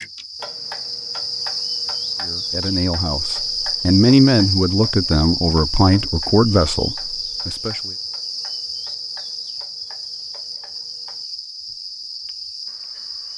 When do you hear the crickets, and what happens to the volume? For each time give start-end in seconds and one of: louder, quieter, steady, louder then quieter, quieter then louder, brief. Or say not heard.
0.0-13.3 quieter.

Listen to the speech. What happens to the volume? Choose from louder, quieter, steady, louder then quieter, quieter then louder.
louder then quieter.